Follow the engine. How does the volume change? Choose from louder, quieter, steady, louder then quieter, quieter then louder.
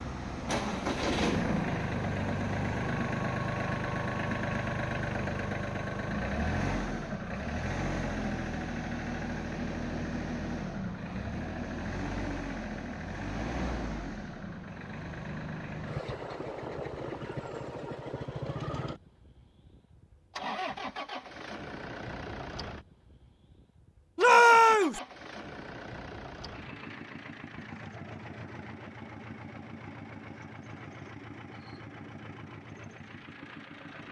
quieter.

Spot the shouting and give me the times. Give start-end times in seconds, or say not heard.
24.1-25.0.